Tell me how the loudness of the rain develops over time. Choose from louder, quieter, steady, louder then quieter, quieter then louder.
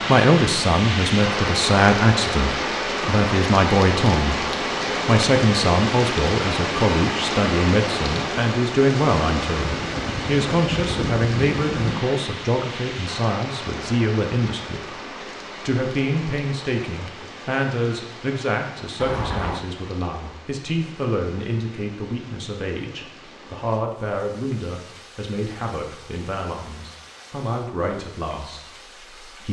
quieter.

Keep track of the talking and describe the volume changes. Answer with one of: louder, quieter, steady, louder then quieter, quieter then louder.
quieter.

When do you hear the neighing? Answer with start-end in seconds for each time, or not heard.
9.6-12.1, 18.9-19.6.